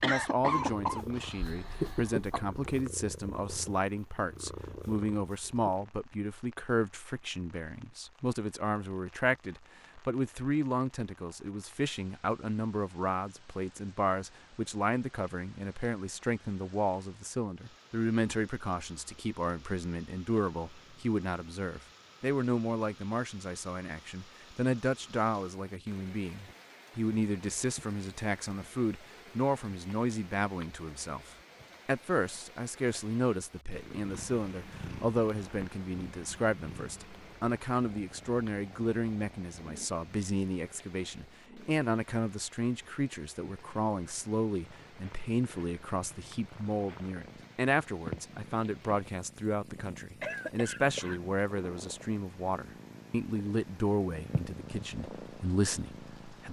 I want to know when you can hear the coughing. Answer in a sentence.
You can hear the coughing from 0.0 to 2.5 s and from 49.8 to 51.2 s.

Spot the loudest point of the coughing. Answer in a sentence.
The volume of the coughing peaks at 1 second.